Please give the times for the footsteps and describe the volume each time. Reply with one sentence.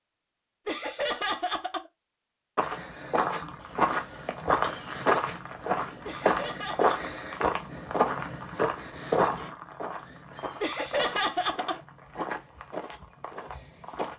The footsteps can be heard from 2.5 to 14.1 s, getting quieter.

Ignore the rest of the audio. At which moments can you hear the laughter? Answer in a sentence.
The laughter can be heard from 0.7 to 1.9 s, from 6.0 to 7.0 s and from 10.6 to 11.8 s.